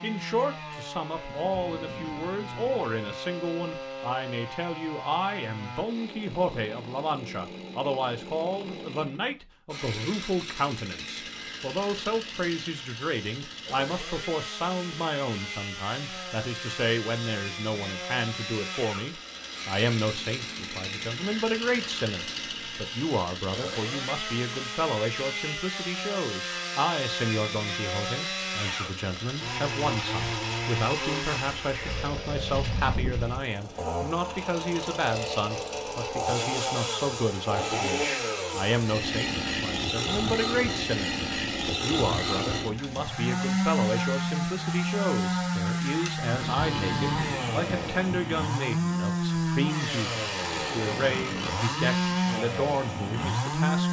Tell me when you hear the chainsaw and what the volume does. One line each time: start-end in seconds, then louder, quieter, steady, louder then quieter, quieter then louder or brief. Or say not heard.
0.0-53.8 louder.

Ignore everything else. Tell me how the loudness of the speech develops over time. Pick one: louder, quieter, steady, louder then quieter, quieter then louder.
steady.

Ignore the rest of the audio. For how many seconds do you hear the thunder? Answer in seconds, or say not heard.
4 s.